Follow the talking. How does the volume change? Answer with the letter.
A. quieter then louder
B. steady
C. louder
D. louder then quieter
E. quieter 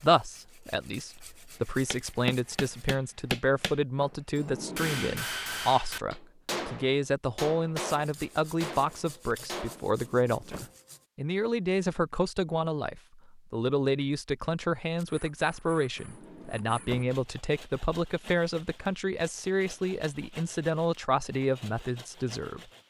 B.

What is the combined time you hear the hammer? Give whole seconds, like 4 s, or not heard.
8 s.